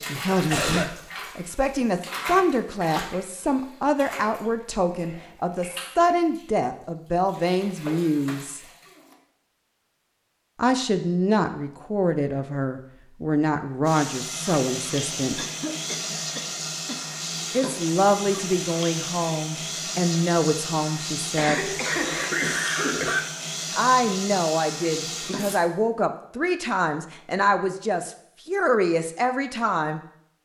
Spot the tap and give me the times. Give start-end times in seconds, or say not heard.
0.0-9.2, 13.8-25.6.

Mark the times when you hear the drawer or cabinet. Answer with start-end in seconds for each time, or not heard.
not heard.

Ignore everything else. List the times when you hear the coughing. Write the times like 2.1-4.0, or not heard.
0.3-0.9, 15.3-17.0, 21.4-23.2.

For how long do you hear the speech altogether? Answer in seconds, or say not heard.
24 s.